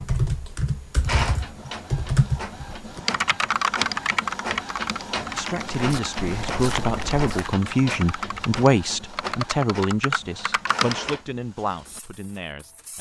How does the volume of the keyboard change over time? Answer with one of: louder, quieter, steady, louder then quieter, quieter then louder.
quieter then louder.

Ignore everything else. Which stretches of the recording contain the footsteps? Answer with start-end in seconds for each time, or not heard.
5.7-7.5.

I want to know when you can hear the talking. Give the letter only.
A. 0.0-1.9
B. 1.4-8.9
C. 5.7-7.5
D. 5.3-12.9
D.